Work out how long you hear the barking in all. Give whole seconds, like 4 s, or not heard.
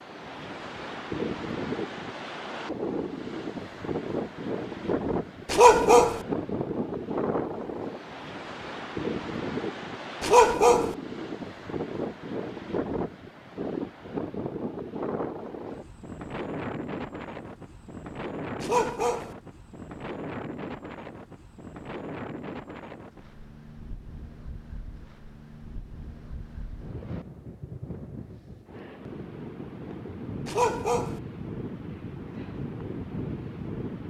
3 s.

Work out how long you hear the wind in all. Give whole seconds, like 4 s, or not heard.
34 s.